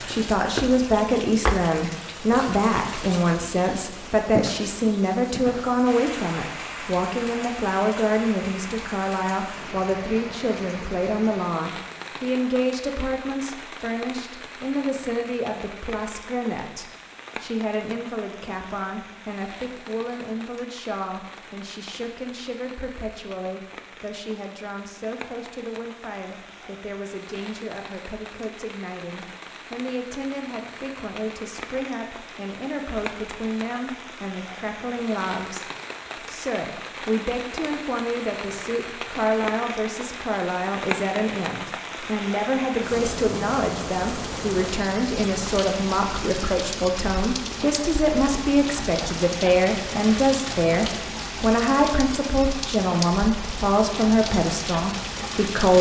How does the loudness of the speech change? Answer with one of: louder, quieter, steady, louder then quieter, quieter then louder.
quieter then louder.